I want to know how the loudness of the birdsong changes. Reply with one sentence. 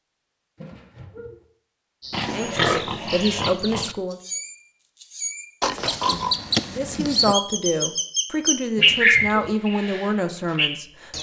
The loudness of the birdsong goes up.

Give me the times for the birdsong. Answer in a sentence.
The birdsong can be heard from 2.0 to 11.1 s.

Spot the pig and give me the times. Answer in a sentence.
You can hear the pig from 2.1 to 4.0 s and from 5.6 to 7.3 s.